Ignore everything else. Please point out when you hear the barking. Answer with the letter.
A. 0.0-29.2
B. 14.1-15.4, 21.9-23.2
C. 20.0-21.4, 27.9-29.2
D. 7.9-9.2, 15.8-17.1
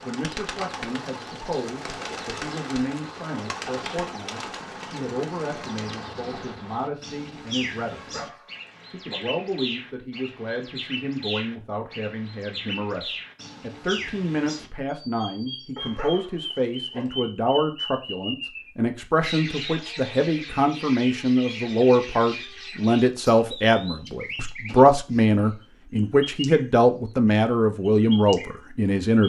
D.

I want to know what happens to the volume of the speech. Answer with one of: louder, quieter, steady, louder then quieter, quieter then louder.
louder.